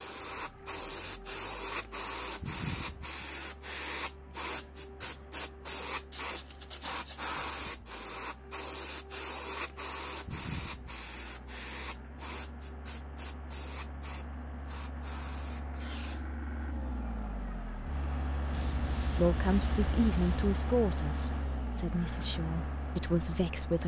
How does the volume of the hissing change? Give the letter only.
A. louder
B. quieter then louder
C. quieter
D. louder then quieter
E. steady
C.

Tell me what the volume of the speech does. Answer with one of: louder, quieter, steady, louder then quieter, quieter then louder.
quieter then louder.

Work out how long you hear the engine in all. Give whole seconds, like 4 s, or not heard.
24 s.